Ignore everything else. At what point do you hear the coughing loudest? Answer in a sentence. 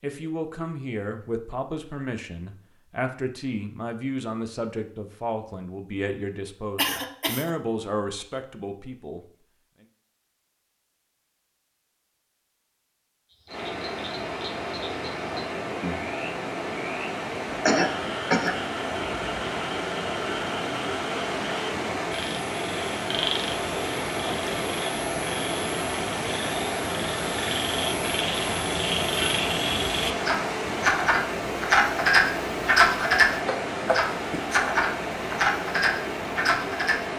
The volume of the coughing peaks at 18 seconds.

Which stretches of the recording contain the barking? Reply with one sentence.
You can't hear the barking here.